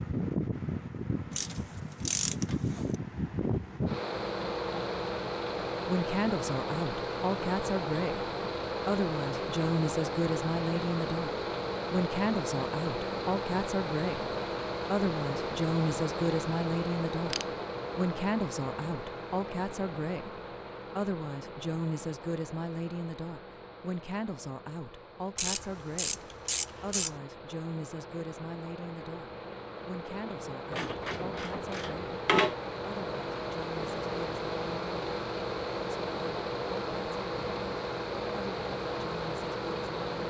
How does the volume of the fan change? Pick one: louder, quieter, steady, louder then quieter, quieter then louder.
quieter then louder.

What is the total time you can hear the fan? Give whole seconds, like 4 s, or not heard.
40 s.